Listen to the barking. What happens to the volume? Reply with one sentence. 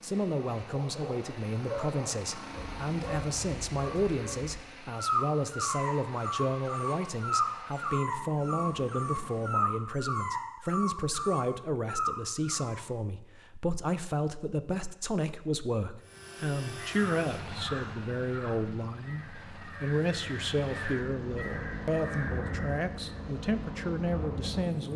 The loudness of the barking goes up.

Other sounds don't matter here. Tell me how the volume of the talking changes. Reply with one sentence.
The volume of the talking stays about the same.